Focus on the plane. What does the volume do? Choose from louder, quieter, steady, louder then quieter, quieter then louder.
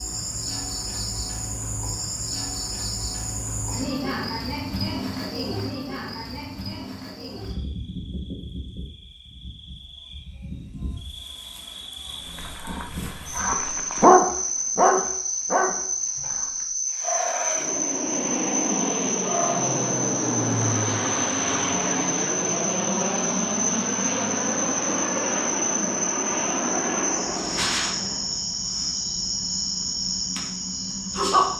steady.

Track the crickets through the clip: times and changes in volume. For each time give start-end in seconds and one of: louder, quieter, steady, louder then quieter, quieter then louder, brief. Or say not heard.
0.0-31.5 quieter then louder.